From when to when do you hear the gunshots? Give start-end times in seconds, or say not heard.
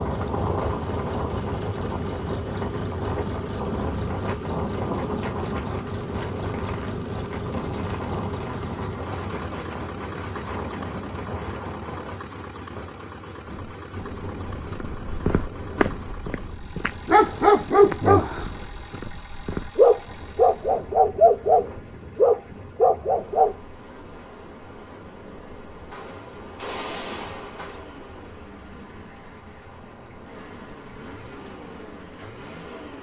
7.6-9.7, 25.9-27.8.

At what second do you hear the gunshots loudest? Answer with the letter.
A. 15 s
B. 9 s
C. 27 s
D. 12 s
C.